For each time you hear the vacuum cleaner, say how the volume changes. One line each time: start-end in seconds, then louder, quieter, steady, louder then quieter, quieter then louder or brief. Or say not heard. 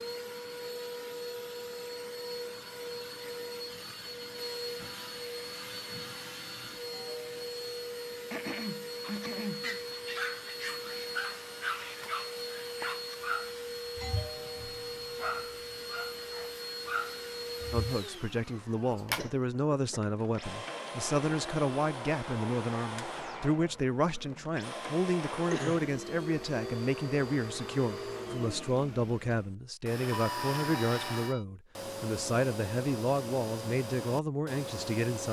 0.0-35.2 steady.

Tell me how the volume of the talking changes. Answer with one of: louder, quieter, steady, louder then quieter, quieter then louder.
steady.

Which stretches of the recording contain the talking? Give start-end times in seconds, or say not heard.
17.7-35.2.